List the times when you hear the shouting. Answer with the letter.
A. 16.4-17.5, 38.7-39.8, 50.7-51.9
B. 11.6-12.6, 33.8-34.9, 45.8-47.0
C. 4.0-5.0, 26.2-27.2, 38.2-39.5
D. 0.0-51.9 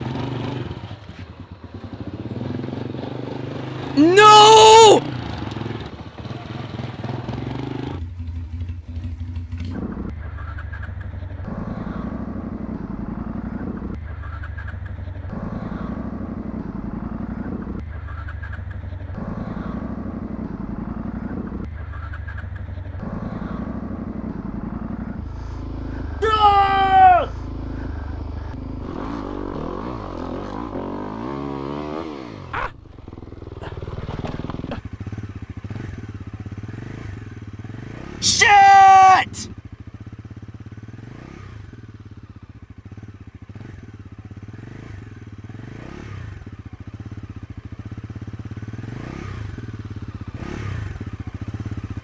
C.